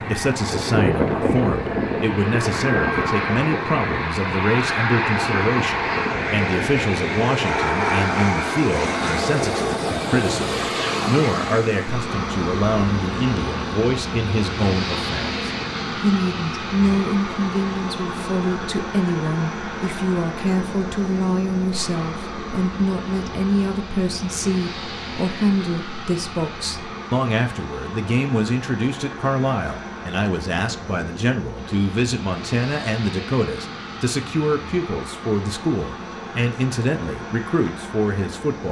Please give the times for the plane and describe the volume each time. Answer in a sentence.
The plane can be heard from 0.0 to 38.6 s, getting quieter.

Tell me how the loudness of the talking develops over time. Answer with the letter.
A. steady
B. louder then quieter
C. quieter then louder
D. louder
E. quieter
A.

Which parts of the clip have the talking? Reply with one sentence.
You can hear the talking from 0.1 to 38.6 s.